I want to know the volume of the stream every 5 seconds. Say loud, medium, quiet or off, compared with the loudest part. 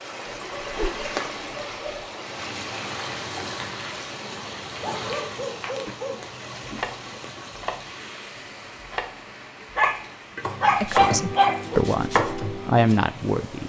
loud, medium, medium.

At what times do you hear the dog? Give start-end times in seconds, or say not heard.
0.2-2.0, 4.7-6.2, 9.8-11.6.